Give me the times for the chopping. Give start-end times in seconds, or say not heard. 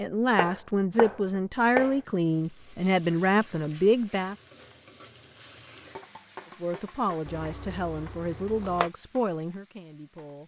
0.3-2.0, 7.2-8.9.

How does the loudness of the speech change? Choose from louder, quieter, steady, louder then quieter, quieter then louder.
quieter.